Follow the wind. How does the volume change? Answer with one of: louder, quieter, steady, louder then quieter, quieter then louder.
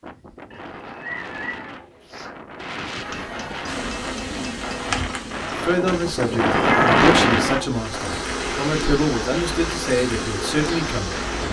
louder then quieter.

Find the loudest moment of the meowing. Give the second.
7 s.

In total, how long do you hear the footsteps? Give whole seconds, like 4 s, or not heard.
not heard.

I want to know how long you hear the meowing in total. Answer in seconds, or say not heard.
2 s.